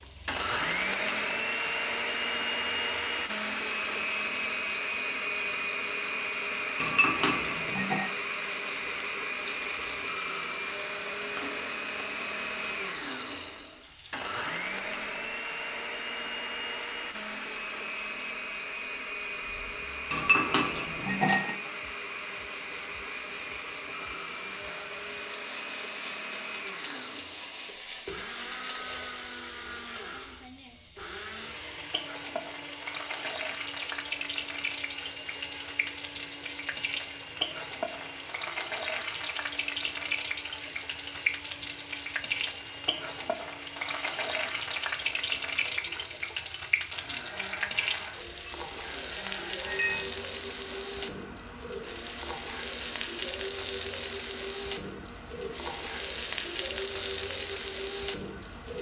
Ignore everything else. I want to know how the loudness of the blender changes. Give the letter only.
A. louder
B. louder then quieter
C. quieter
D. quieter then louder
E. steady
C.